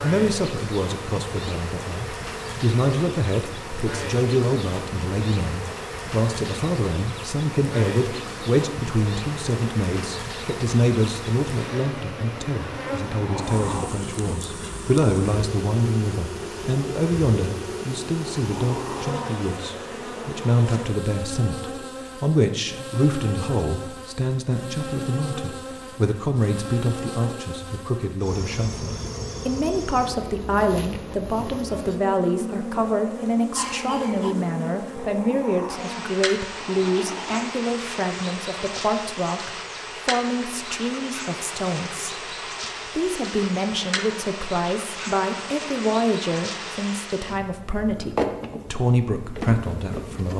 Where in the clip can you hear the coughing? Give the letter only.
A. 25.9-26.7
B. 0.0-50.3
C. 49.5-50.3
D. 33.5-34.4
D.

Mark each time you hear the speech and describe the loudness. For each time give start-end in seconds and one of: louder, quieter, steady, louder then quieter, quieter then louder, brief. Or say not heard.
0.0-50.3 steady.